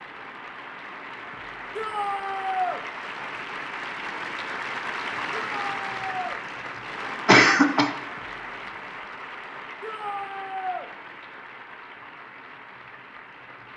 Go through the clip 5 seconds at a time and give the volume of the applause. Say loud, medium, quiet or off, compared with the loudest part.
loud, loud, medium.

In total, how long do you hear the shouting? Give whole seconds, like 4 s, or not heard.
3 s.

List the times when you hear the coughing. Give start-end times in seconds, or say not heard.
7.2-7.9.